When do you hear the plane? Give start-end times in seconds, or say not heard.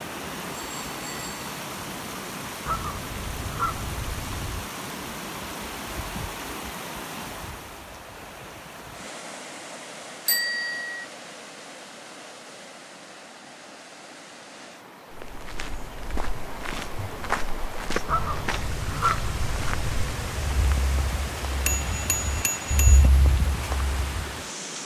not heard.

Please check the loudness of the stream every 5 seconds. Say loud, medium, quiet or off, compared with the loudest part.
loud, loud, medium, loud, loud.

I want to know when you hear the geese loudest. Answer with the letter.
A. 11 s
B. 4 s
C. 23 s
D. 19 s
D.